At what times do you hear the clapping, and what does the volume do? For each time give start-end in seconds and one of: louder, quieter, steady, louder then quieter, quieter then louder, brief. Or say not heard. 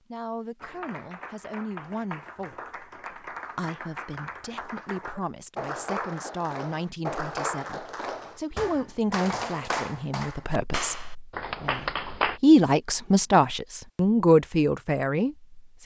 0.6-12.4 louder.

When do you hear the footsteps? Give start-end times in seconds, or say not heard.
not heard.